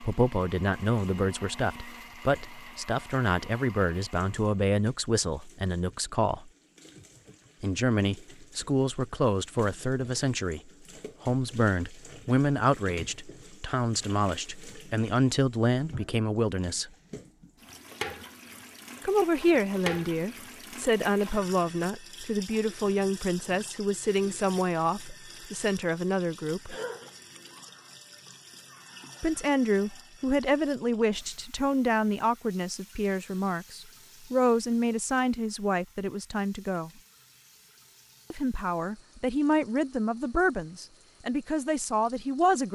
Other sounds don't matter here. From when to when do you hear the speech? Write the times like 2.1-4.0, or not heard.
0.0-6.5, 7.6-16.9, 19.1-26.8, 29.2-36.9, 38.3-42.7.